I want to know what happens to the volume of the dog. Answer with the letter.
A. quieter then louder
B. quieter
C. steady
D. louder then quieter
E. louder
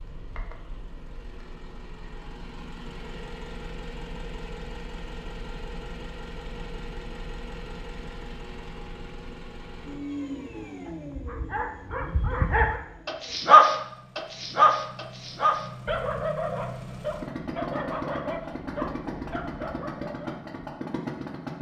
D.